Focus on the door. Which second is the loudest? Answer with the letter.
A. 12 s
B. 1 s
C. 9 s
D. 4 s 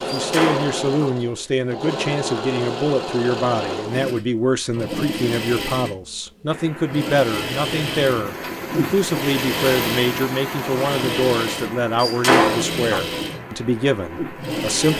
A.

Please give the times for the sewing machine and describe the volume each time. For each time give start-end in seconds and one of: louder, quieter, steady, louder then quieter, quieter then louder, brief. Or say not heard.
0.0-14.9 steady.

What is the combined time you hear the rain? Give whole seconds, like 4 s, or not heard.
8 s.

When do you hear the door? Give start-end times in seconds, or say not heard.
0.1-1.1, 12.0-13.0.